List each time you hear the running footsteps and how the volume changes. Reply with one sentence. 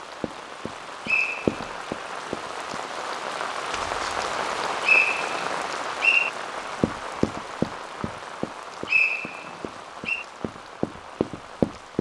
The running footsteps can be heard briefly from 0.2 to 2.8 s; and from 6.8 to 11.9 s, getting quieter then louder.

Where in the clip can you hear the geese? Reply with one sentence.
The geese can't be heard in this clip.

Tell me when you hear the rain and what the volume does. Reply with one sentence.
The rain can be heard from 0.0 to 11.9 s, getting louder then quieter.